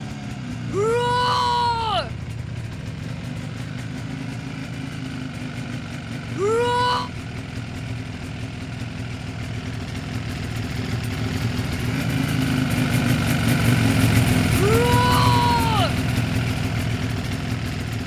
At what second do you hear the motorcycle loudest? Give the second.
14 s.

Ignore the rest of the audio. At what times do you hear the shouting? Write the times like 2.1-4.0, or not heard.
0.7-2.1, 6.3-7.1, 14.6-15.9.